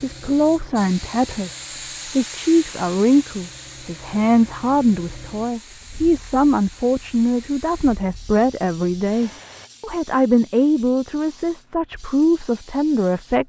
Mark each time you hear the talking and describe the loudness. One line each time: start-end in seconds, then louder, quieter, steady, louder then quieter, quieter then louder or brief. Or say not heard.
0.0-13.4 steady.